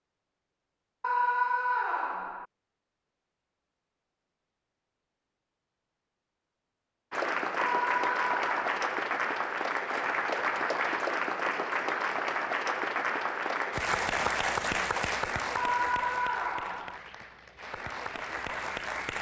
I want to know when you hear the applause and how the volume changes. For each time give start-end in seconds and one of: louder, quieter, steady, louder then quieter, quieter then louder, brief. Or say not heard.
7.1-19.1 quieter.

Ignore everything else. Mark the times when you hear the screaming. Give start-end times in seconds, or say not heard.
1.0-2.5, 7.5-8.8, 15.6-17.0.